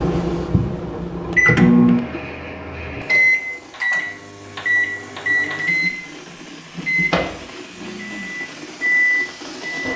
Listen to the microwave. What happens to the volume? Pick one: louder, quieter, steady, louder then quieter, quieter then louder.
quieter.